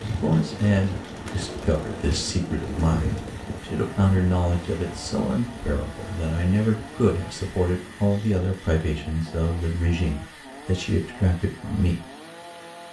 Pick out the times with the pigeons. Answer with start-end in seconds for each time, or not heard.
0.0-3.4.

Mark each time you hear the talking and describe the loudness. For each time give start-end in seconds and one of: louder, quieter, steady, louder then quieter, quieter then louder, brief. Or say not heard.
0.0-12.1 steady.